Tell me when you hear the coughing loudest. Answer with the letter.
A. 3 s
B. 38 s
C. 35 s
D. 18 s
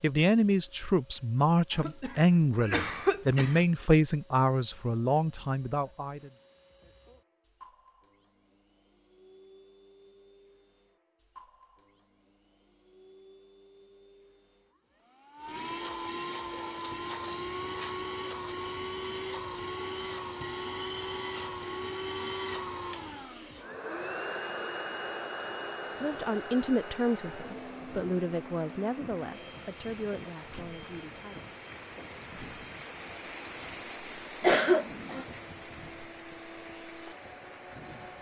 C.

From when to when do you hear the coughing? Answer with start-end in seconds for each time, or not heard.
1.7-3.6, 16.8-17.6, 34.4-35.2.